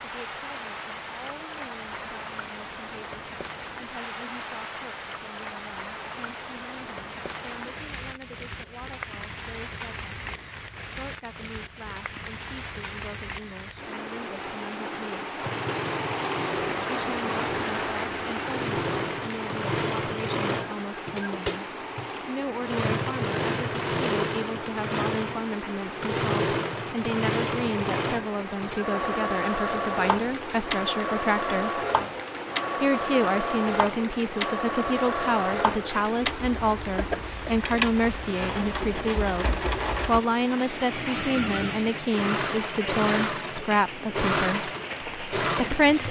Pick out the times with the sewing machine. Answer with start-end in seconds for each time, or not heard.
15.4-46.0.